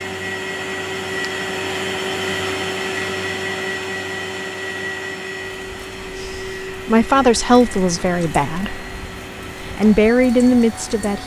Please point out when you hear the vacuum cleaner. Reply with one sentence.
The vacuum cleaner can be heard from 0.0 to 11.2 s.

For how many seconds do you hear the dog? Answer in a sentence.
You can't hear the dog here.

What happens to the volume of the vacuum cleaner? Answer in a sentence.
The volume of the vacuum cleaner goes down.